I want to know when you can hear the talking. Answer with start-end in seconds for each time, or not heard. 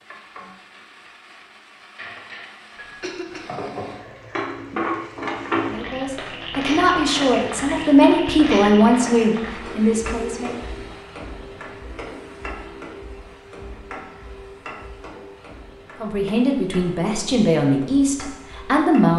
5.7-10.6, 16.0-19.1.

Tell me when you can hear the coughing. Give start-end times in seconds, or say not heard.
2.8-3.5.